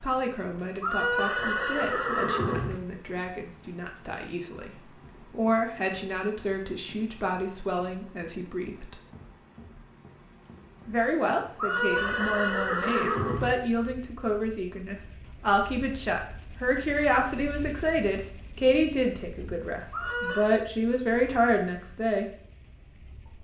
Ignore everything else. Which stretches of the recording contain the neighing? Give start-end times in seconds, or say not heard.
0.8-2.8, 11.6-13.5, 19.9-20.6.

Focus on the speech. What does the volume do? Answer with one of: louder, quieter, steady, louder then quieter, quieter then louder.
louder.